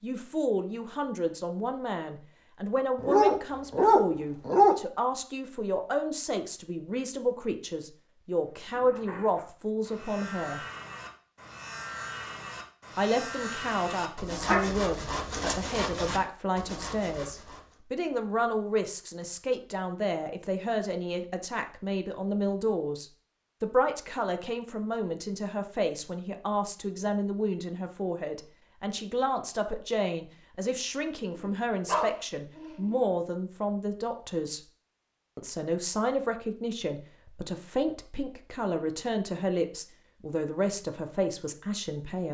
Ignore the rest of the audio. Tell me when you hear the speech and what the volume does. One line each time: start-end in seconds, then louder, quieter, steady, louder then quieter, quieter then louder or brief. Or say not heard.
0.0-10.6 steady
12.9-34.6 steady
35.4-42.2 steady.